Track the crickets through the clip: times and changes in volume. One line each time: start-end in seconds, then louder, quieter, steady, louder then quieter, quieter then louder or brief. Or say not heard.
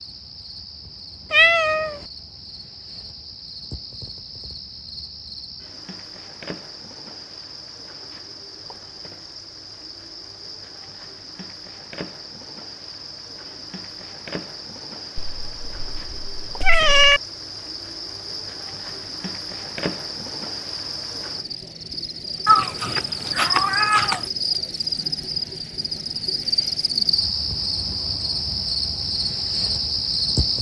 0.0-30.5 louder.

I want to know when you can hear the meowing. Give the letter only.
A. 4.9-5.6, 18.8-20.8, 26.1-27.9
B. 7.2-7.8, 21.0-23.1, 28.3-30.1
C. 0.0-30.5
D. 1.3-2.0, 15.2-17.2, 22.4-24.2
D.